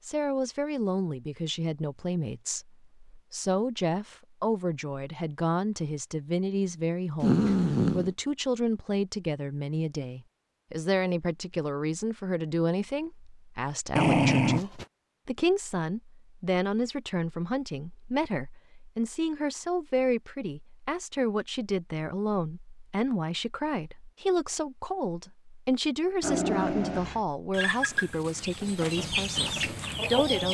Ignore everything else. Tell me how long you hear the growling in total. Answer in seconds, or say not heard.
3 s.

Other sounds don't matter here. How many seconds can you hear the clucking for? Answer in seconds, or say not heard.
3 s.